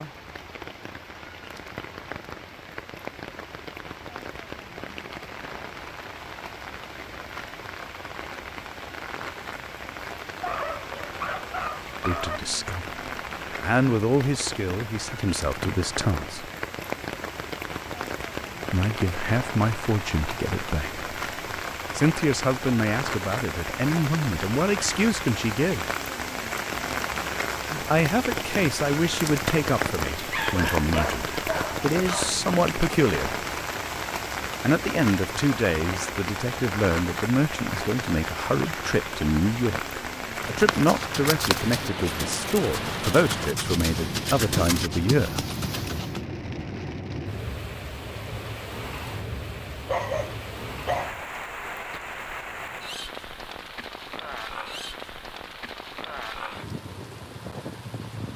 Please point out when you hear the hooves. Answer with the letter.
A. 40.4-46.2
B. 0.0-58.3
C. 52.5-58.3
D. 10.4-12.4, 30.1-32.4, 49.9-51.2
A.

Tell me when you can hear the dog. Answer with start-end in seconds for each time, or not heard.
10.4-12.4, 30.1-32.4, 49.9-51.2.